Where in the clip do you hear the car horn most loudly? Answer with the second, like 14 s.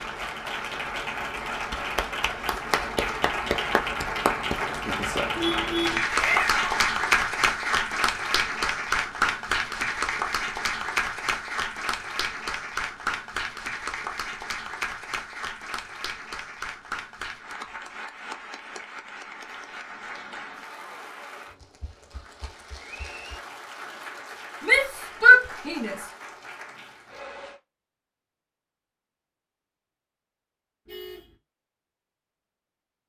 6 s.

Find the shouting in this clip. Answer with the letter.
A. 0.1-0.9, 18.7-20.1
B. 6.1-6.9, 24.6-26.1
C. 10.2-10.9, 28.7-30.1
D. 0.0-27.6
B.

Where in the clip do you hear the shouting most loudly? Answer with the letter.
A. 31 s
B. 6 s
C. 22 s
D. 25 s
D.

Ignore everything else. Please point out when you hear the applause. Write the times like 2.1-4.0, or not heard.
0.0-27.6.